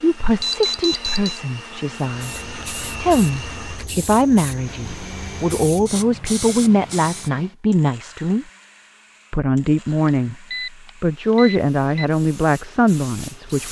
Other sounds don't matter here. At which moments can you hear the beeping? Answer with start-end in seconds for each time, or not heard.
0.4-1.4, 10.1-12.1.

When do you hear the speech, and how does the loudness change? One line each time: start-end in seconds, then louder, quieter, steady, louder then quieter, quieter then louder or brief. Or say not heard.
0.0-8.4 louder
9.3-10.3 brief
11.0-13.6 brief.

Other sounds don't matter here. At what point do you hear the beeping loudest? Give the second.
1 s.